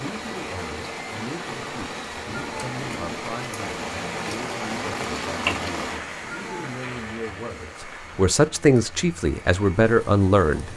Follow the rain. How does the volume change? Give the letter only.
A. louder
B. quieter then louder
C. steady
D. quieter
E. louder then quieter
E.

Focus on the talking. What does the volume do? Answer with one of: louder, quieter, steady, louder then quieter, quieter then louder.
louder.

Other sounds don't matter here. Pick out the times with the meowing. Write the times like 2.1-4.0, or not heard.
2.3-3.2, 6.2-6.8.